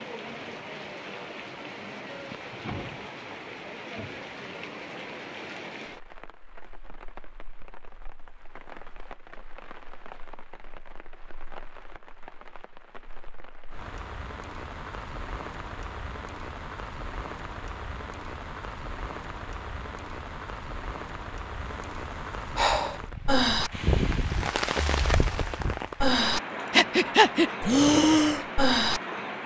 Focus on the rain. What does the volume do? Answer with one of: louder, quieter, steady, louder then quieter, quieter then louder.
quieter then louder.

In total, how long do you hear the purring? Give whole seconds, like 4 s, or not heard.
not heard.